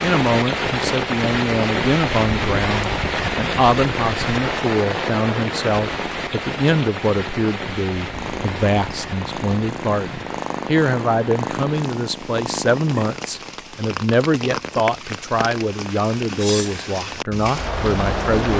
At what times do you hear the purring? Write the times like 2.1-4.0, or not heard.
8.1-13.2.